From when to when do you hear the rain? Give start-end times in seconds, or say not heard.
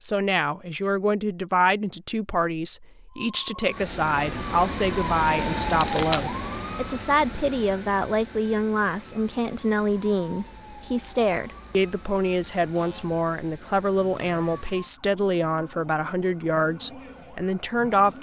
not heard.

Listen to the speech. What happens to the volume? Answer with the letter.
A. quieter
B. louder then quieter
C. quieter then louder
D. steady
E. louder
D.